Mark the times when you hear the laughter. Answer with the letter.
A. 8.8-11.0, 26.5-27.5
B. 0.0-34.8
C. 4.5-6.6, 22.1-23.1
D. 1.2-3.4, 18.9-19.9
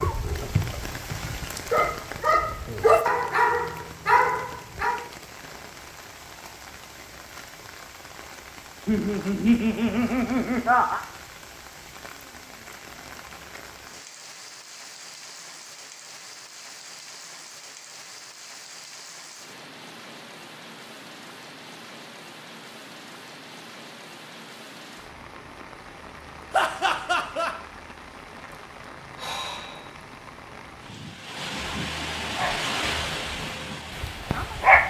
A.